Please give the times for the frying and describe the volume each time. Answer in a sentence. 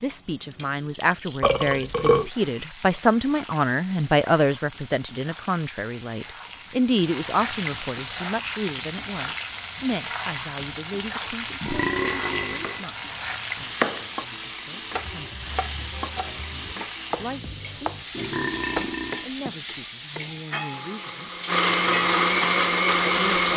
You can hear the frying from 0.0 to 23.5 s, getting louder.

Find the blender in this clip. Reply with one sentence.
The blender can be heard from 20.7 to 23.5 s.